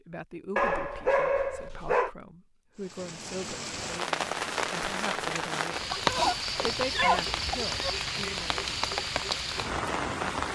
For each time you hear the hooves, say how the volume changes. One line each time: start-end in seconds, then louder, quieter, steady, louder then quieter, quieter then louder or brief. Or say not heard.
not heard.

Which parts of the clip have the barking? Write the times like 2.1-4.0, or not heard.
0.6-2.1, 5.9-7.9.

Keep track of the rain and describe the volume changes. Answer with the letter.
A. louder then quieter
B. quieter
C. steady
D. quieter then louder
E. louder
C.